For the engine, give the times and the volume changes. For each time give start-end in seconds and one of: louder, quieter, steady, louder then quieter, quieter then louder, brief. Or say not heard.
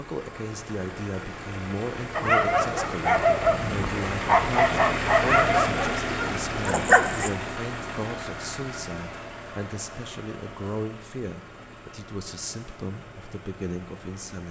0.0-14.4 louder then quieter.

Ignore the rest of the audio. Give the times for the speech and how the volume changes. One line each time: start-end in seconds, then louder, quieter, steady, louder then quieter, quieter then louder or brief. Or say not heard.
0.0-14.4 steady.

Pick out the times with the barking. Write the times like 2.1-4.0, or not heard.
2.1-7.3.